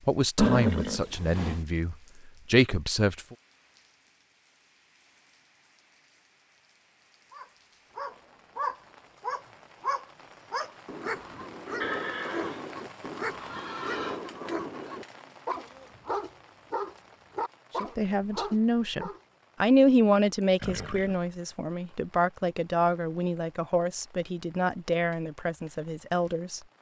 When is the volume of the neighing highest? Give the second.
1 s.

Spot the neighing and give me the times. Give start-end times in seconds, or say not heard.
0.3-1.6, 11.8-14.2, 20.6-21.3.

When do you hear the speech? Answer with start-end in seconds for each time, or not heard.
0.1-3.4, 17.8-26.6.